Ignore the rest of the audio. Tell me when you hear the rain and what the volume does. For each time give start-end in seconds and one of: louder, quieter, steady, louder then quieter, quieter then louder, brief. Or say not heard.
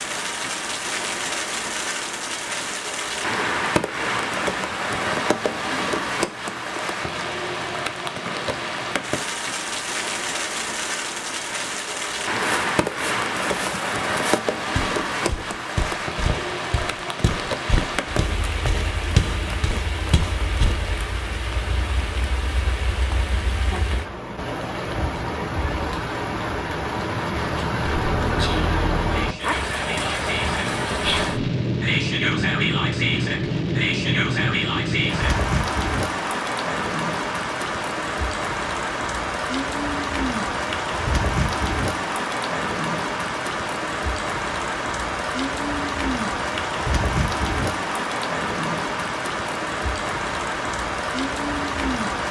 0.0-52.2 steady.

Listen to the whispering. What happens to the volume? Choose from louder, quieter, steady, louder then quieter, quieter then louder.
louder.